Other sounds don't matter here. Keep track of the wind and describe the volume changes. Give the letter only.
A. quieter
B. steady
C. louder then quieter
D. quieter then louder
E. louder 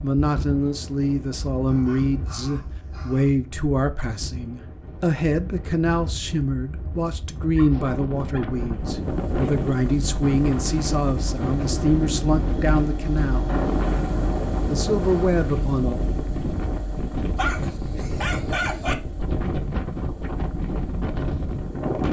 E.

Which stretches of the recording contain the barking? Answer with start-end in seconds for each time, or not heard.
1.6-3.4, 7.5-8.5, 17.4-18.9.